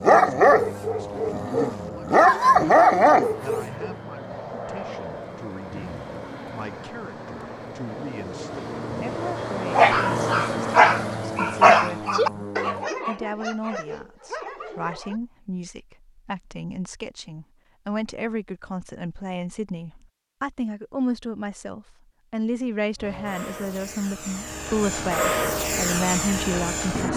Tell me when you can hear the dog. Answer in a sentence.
You can hear the dog from 0.0 to 4.0 s and from 9.8 to 15.2 s.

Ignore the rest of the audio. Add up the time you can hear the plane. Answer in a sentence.
You can hear the plane for 17 seconds altogether.